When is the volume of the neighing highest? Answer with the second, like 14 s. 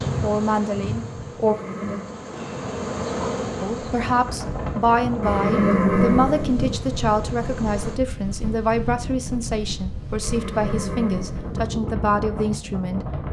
6 s.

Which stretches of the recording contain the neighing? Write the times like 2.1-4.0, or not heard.
1.4-2.1, 5.2-6.8, 10.2-11.6.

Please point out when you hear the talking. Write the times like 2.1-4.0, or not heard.
0.2-1.6, 3.6-13.2.